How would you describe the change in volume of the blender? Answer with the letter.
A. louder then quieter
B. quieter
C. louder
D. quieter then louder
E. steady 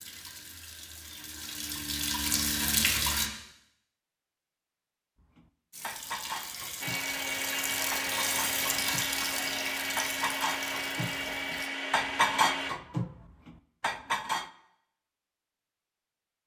E.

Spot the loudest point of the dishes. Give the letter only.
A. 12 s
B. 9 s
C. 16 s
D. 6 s
A.